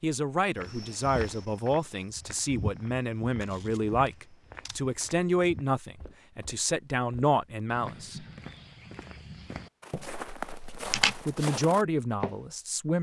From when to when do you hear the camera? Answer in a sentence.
You can hear the camera from 3.4 to 4.8 s and from 10.4 to 11.2 s.